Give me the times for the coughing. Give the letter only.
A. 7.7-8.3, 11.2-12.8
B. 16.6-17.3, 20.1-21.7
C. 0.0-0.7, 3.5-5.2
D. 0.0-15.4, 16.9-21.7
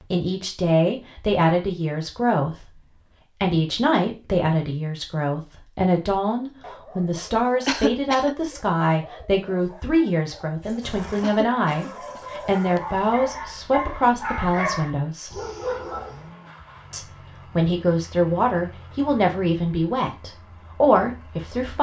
A.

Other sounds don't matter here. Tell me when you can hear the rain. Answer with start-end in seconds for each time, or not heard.
not heard.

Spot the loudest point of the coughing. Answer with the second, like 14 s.
8 s.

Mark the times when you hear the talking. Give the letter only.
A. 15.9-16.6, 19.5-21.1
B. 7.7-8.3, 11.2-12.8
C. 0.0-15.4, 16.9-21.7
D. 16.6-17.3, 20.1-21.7
C.